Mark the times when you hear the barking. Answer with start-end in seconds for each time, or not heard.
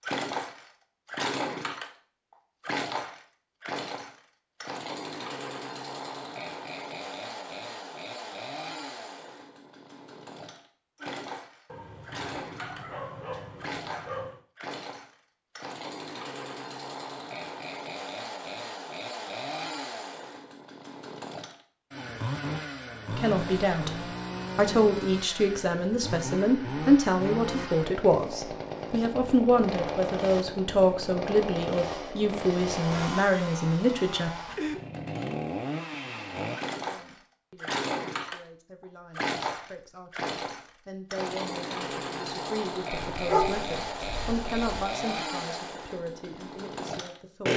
11.7-14.4, 43.1-44.9.